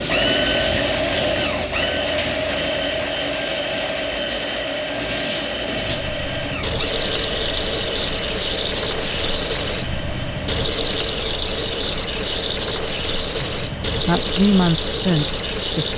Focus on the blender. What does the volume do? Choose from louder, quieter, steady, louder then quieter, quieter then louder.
quieter.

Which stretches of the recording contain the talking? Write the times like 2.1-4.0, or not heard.
13.4-15.9.